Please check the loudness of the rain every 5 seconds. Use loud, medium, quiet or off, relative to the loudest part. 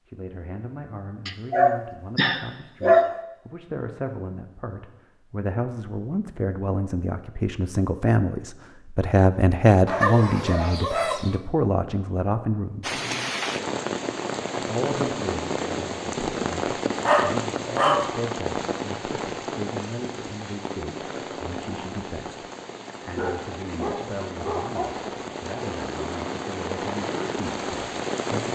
off, off, loud, loud, medium, loud.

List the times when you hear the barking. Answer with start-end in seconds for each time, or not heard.
1.2-3.1, 9.8-11.3, 17.1-18.1, 22.9-25.1.